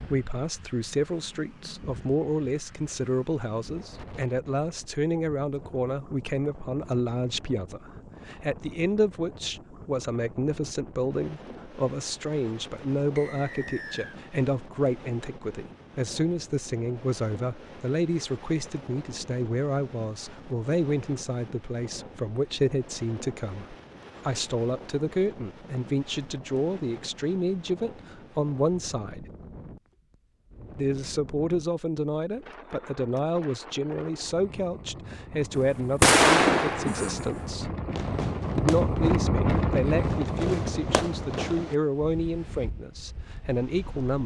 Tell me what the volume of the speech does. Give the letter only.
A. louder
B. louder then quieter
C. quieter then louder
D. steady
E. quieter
D.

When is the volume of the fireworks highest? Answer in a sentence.
The loudest moment of the fireworks is at 36 seconds.